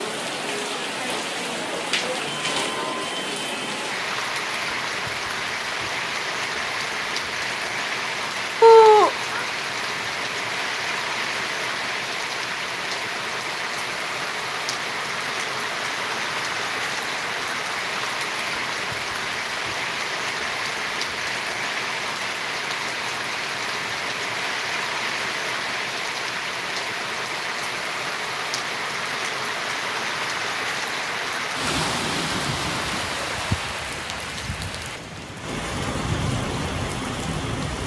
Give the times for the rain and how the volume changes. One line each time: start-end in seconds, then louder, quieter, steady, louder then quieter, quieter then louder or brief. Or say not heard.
0.0-37.8 steady.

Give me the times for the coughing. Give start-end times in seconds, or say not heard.
8.6-9.4.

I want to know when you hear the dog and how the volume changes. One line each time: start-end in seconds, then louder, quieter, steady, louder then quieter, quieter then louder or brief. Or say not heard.
not heard.